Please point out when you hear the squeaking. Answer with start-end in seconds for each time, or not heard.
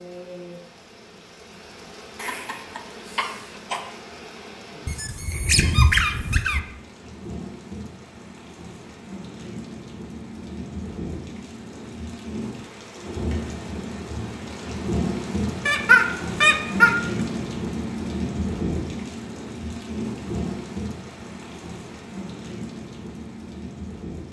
4.8-6.6, 15.7-17.0.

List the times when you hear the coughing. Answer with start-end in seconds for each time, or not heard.
2.1-3.9.